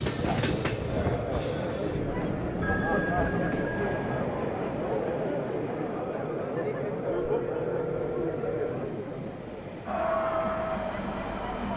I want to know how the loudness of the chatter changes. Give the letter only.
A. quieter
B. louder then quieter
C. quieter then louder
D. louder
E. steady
E.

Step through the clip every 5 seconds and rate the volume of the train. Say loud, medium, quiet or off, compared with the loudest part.
loud, medium, medium.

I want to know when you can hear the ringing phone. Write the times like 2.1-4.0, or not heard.
2.6-4.2, 7.0-8.8.